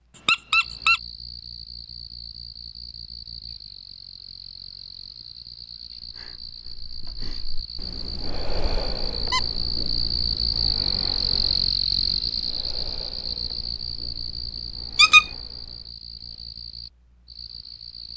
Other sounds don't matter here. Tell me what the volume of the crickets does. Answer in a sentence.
The volume of the crickets goes up, then down.